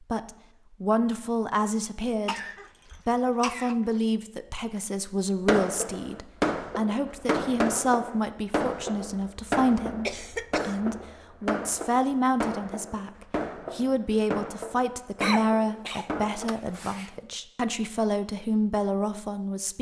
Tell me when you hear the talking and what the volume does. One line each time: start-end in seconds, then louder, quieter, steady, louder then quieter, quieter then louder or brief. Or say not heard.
0.0-2.4 brief
3.0-19.7 steady.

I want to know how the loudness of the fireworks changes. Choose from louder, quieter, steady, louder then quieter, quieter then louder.
quieter.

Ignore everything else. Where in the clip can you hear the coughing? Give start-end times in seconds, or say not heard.
2.2-3.8, 10.1-10.8, 15.2-17.1.